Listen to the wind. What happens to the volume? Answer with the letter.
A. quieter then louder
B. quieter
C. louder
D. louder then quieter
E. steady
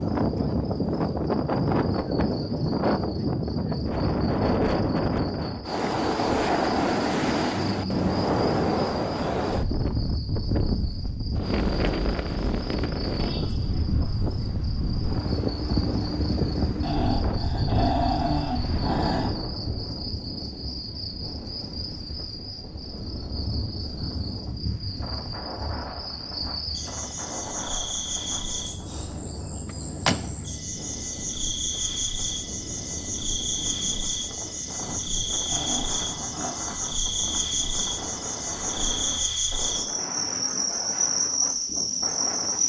B.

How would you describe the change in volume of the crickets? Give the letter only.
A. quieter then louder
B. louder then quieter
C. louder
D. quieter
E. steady
C.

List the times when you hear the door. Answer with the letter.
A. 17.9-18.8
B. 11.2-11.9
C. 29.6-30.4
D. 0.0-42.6
C.